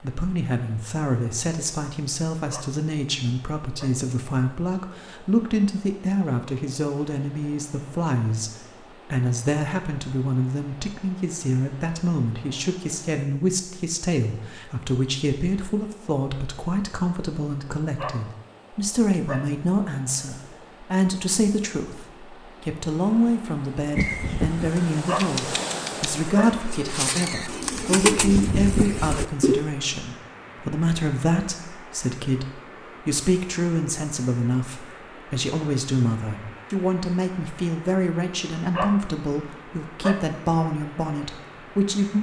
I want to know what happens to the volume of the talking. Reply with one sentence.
The loudness of the talking stays about the same.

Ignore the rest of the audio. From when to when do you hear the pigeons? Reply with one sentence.
The pigeons can be heard from 23.9 to 29.6 s.